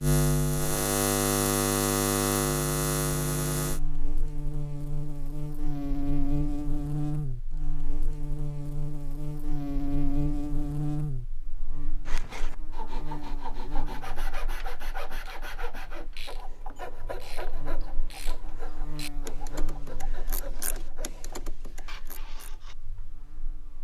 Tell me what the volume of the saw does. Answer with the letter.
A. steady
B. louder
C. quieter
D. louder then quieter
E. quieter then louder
C.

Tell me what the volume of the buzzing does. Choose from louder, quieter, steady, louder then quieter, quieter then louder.
quieter then louder.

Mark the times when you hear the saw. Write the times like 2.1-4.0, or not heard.
12.1-22.8.